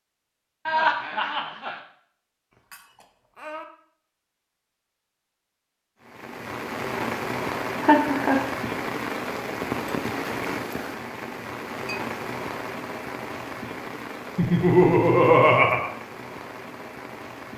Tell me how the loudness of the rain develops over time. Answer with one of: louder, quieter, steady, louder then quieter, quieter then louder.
quieter.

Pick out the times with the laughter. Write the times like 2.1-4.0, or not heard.
0.7-1.8, 7.8-8.4, 14.3-15.9.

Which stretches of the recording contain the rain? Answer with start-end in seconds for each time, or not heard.
6.0-17.5.